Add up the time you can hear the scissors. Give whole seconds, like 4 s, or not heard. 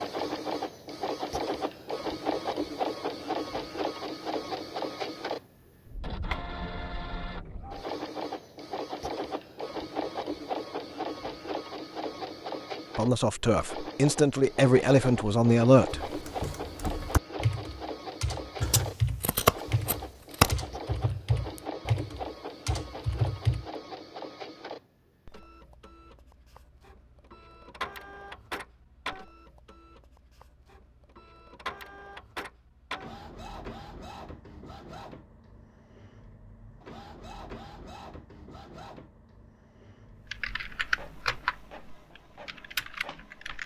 2 s.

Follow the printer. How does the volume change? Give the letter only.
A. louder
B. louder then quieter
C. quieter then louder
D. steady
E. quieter
E.